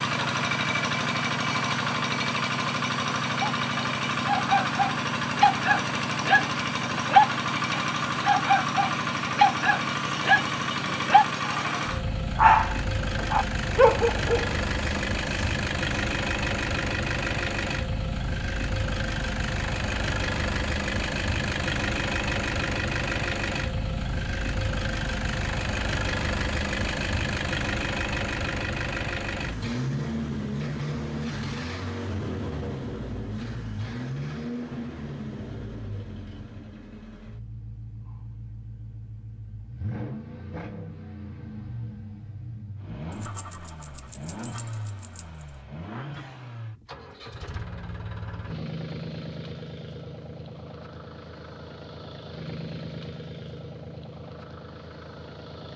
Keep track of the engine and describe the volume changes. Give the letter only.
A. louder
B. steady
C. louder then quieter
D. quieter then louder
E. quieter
E.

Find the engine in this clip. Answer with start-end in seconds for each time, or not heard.
0.0-55.7.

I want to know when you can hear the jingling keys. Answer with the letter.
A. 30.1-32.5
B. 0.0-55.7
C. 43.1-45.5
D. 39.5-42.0
C.